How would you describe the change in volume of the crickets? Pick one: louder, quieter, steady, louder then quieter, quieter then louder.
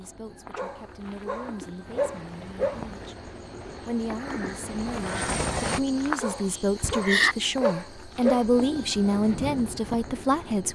louder then quieter.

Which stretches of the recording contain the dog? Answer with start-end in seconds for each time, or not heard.
0.6-2.9, 6.2-8.4.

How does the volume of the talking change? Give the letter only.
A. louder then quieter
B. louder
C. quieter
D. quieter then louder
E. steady
B.